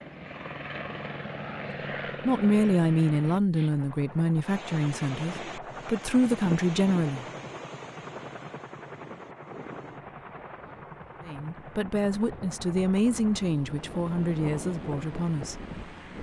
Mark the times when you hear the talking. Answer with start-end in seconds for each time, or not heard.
2.2-7.2, 11.2-15.7.